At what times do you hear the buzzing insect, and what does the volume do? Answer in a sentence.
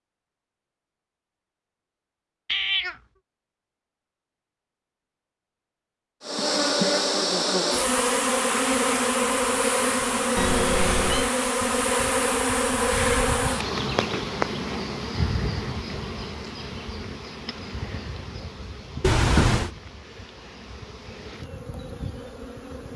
The buzzing insect can be heard from 6.2 to 22.9 s, getting quieter.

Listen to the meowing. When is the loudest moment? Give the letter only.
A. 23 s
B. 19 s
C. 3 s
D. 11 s
B.